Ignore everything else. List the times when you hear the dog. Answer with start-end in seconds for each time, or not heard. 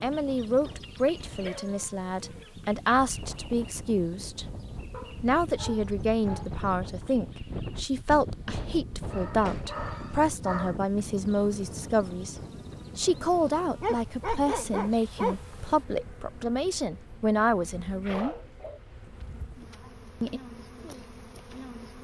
0.8-2.5, 4.9-6.5, 9.1-10.8, 13.8-15.8, 18.0-19.4.